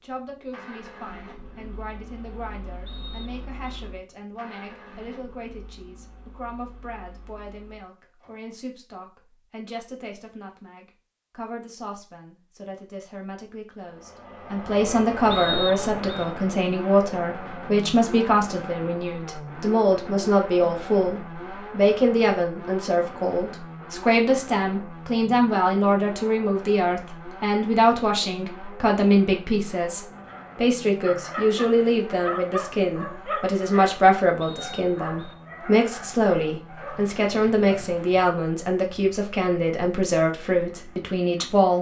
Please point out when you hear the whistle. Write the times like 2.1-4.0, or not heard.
2.9-3.8, 15.3-16.2, 34.4-35.4.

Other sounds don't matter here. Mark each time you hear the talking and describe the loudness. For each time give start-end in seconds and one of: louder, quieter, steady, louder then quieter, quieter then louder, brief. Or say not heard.
0.0-41.7 louder.